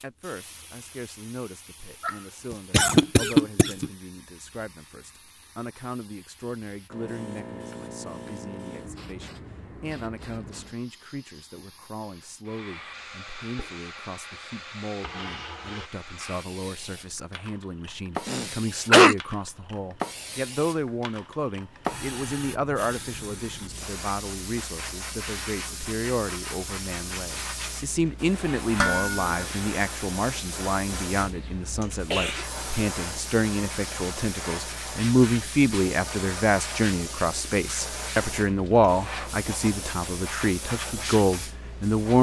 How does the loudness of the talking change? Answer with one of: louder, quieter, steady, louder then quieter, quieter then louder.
louder.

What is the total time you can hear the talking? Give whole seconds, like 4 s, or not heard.
42 s.